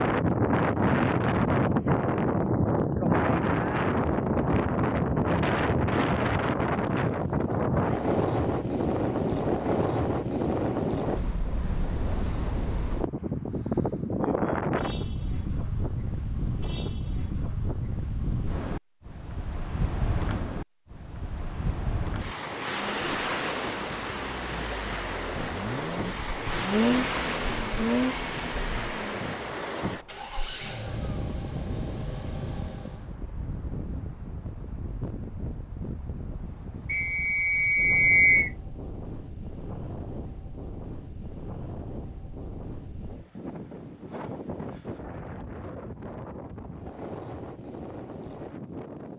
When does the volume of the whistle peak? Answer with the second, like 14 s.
38 s.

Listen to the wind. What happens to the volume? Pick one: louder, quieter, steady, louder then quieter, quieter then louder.
quieter.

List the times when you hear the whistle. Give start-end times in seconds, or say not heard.
36.9-38.5.